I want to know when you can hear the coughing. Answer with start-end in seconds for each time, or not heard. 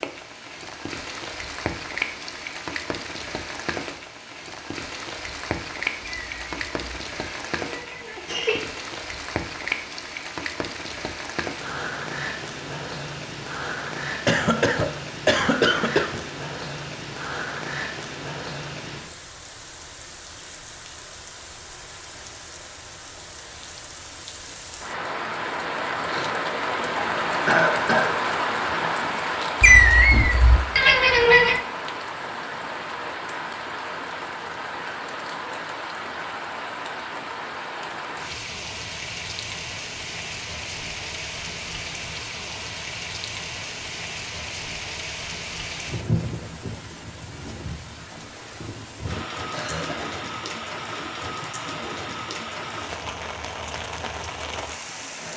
14.2-16.2, 27.4-28.1, 49.5-50.2.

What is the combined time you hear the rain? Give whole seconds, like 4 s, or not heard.
55 s.